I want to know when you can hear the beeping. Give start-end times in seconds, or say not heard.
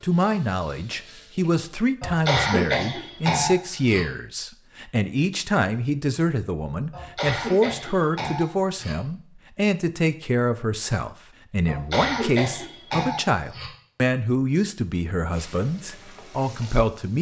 not heard.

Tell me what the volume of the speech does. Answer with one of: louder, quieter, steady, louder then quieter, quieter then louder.
steady.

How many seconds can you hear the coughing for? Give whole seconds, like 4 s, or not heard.
6 s.